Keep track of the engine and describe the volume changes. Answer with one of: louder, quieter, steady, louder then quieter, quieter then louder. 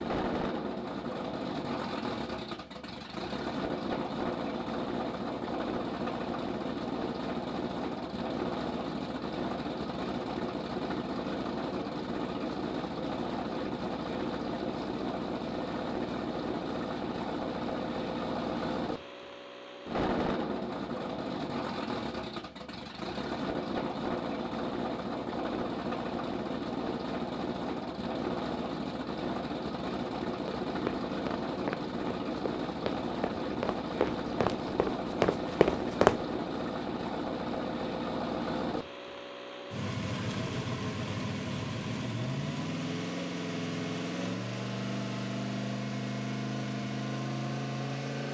steady.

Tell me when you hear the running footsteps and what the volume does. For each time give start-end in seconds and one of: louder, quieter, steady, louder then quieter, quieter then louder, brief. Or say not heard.
30.4-36.2 quieter then louder.